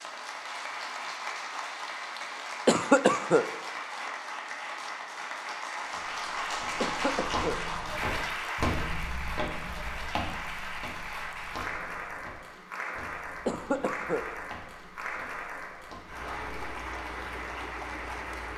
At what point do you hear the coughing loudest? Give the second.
3 s.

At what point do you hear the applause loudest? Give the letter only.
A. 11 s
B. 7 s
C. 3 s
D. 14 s
B.